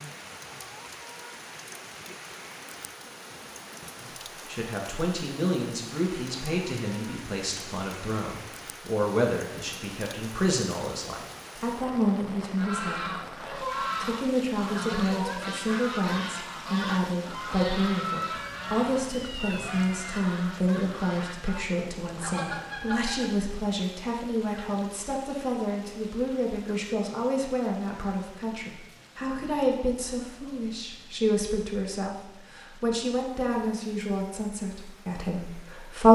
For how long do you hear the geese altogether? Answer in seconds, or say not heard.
11 s.